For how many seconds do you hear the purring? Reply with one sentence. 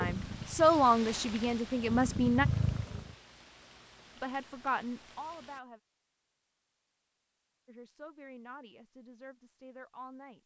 You can hear the purring for 3 seconds altogether.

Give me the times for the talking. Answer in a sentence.
The talking can be heard from 0.0 to 2.5 s, from 4.2 to 5.8 s and from 7.7 to 10.4 s.